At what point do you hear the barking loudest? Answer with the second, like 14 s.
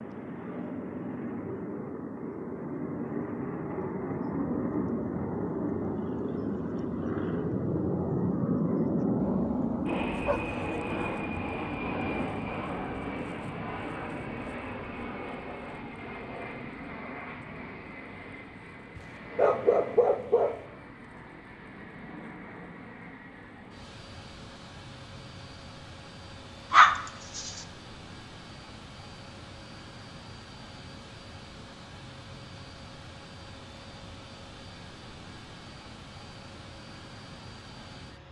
27 s.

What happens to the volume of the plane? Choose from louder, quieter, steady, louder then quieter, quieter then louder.
quieter.